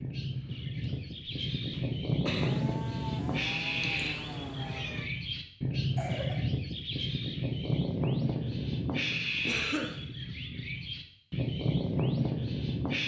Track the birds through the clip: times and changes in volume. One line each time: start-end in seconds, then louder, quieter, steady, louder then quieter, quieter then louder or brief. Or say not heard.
0.0-13.0 steady.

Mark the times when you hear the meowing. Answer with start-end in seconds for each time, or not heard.
3.5-5.1.